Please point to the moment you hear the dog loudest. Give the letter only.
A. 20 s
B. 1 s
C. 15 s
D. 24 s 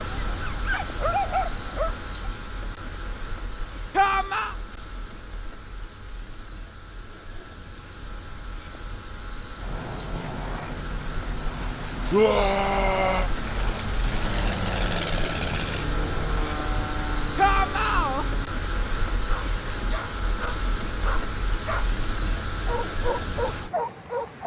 B.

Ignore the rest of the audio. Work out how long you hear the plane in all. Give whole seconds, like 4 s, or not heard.
9 s.